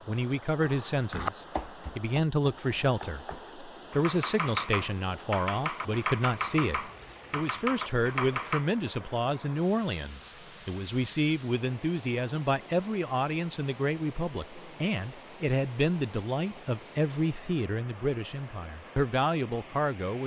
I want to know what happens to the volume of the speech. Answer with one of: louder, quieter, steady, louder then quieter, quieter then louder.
steady.